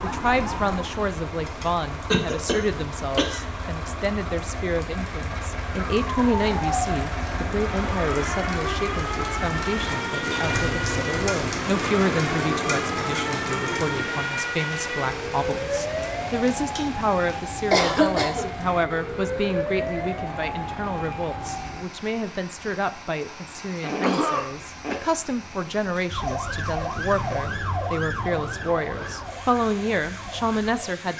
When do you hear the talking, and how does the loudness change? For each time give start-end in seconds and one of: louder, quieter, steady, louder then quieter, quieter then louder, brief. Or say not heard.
0.0-31.1 steady.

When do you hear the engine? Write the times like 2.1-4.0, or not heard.
0.0-14.3.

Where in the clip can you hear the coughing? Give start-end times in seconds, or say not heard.
2.1-3.5, 17.7-18.5, 23.8-25.0.